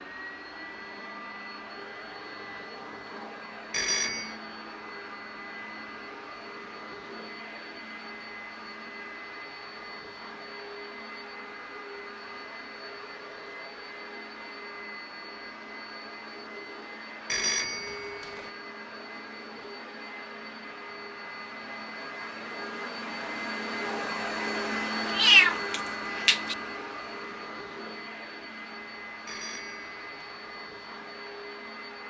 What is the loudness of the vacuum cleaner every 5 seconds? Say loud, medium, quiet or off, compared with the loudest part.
medium, medium, medium, medium, loud, loud, medium.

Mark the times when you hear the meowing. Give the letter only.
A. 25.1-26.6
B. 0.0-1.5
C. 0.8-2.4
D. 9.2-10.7
A.